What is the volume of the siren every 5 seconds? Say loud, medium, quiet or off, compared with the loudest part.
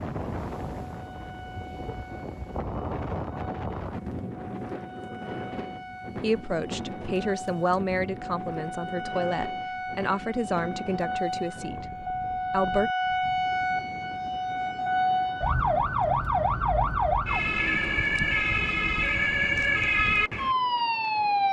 quiet, quiet, medium, loud, loud.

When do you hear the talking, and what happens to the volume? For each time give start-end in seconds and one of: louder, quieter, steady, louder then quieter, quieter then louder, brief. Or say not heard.
6.2-12.9 quieter.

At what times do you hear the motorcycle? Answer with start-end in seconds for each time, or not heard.
not heard.